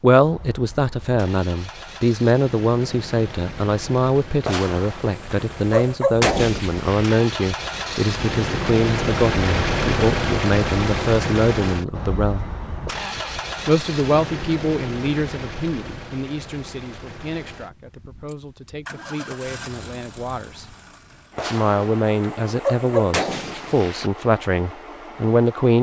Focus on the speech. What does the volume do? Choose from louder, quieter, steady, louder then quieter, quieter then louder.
quieter then louder.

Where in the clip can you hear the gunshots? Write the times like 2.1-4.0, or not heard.
4.5-7.2, 21.4-24.1.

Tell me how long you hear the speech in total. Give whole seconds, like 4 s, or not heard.
24 s.